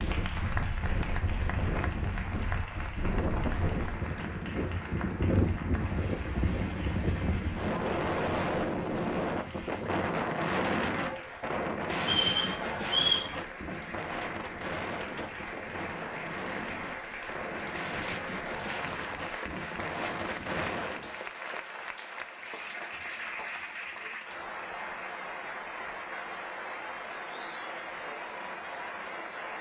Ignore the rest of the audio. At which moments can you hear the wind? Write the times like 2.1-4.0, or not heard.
0.0-21.1.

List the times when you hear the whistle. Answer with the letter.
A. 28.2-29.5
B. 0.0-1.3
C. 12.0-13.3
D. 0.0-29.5
C.